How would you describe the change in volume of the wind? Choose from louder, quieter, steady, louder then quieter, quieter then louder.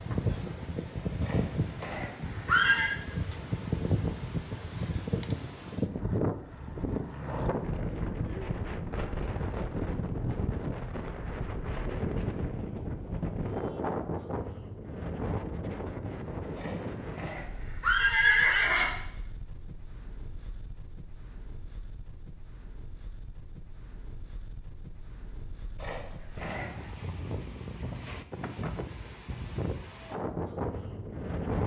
quieter then louder.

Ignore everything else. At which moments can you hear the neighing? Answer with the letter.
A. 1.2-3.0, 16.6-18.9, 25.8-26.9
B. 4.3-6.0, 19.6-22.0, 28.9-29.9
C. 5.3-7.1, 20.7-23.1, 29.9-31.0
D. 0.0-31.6
A.